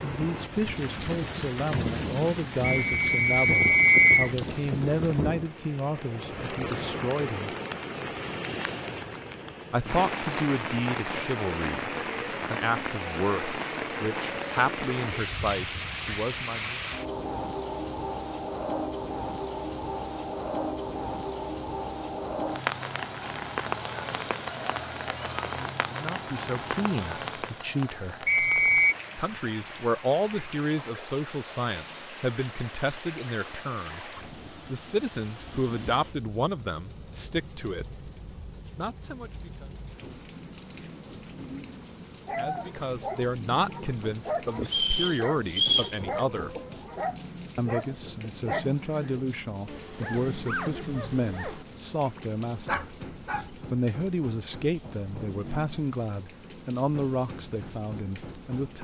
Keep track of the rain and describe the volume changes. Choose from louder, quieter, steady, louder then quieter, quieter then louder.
quieter.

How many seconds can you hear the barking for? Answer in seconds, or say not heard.
11 s.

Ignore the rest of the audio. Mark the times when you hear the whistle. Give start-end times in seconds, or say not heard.
2.6-4.3, 28.2-28.9, 44.6-46.0.